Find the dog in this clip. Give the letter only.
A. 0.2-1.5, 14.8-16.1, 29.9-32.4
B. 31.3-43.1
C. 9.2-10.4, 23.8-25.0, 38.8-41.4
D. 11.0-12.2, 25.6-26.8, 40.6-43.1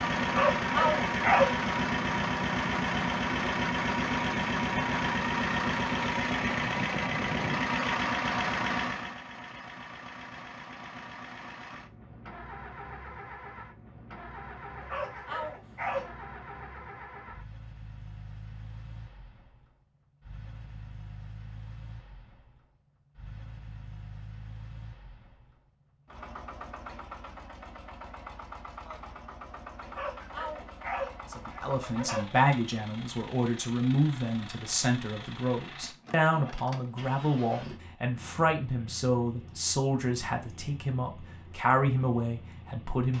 A.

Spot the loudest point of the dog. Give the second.
1 s.